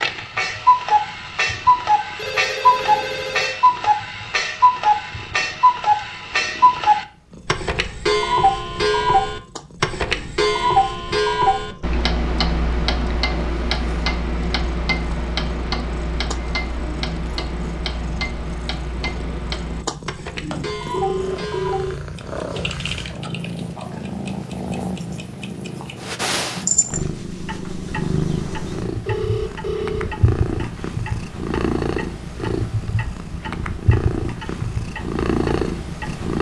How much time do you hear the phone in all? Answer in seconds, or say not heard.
4 s.